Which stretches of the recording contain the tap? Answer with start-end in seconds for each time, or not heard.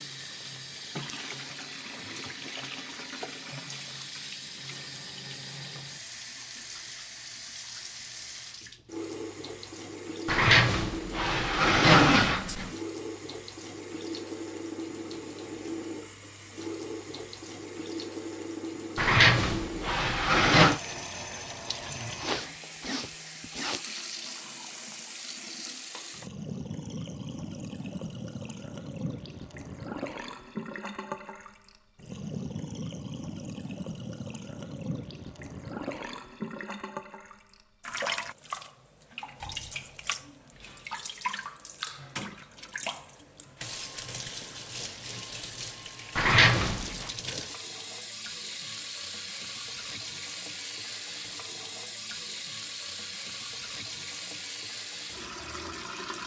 0.0-56.2.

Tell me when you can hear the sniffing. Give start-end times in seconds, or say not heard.
22.1-23.9.